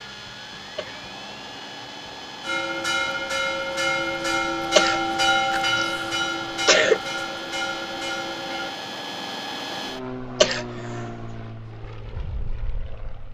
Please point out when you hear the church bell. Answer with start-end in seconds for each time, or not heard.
2.4-8.8.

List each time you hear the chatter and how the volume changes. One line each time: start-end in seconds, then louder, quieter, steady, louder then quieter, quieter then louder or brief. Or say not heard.
not heard.